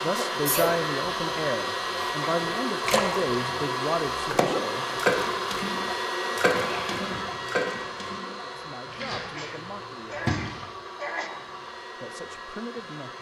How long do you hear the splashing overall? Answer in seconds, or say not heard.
7 s.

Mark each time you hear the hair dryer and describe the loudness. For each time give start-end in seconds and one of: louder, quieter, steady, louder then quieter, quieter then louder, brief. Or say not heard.
0.0-13.1 quieter.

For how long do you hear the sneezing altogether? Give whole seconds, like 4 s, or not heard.
3 s.